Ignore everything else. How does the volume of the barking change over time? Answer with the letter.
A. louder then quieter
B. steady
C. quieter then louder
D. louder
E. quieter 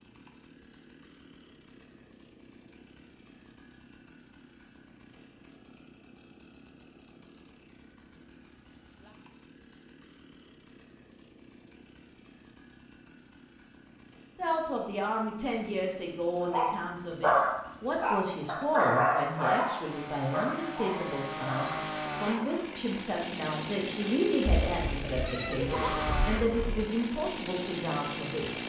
E.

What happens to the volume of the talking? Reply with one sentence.
The loudness of the talking stays about the same.